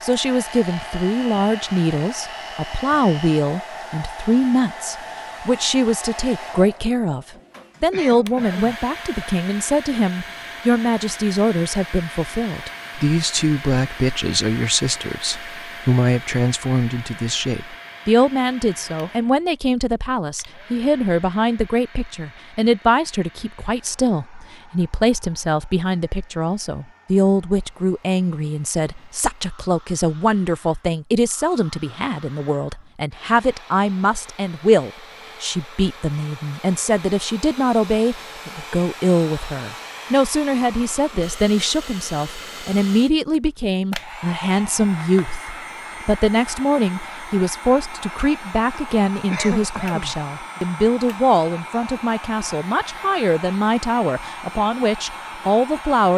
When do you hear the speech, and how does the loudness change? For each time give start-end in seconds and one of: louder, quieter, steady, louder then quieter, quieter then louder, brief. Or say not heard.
0.0-56.1 steady.